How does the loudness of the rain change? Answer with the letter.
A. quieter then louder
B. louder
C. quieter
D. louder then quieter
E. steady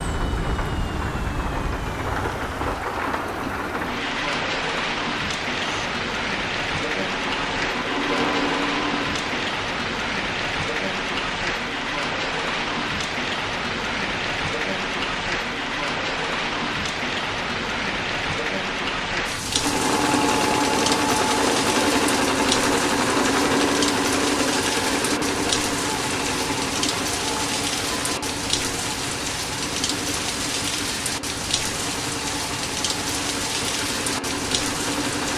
E.